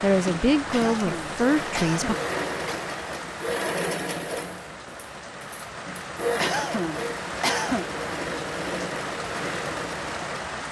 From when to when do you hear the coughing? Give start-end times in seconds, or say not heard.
0.7-2.8, 6.4-7.8.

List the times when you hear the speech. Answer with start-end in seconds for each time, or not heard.
0.0-2.1.